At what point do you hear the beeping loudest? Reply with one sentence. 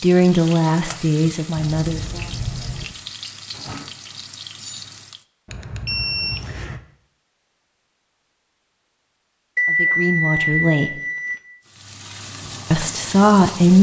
The volume of the beeping peaks at 10 seconds.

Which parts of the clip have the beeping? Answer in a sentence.
The beeping can be heard from 1.6 to 3.0 s, from 5.5 to 6.8 s and from 9.6 to 11.4 s.